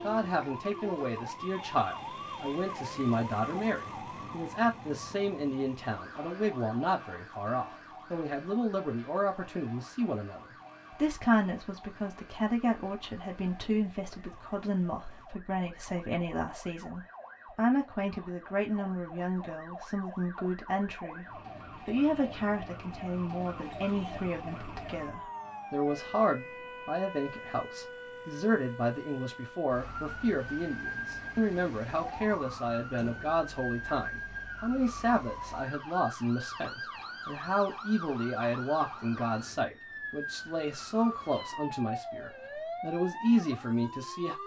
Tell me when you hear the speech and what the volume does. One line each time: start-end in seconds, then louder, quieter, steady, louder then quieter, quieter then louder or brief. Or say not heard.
0.0-21.2 steady
21.9-44.4 steady.